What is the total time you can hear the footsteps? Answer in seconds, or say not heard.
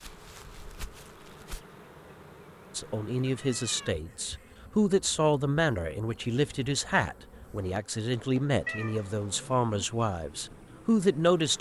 2 s.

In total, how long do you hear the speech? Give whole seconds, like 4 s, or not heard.
9 s.